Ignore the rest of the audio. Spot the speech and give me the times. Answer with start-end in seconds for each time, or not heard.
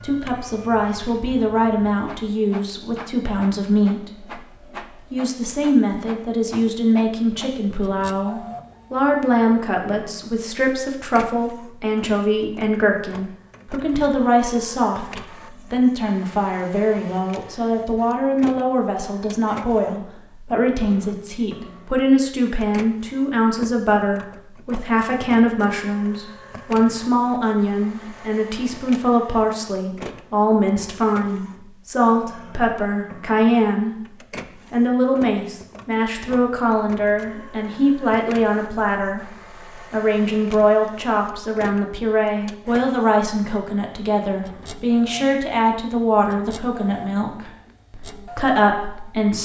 0.0-4.3, 5.1-33.9, 34.7-49.3.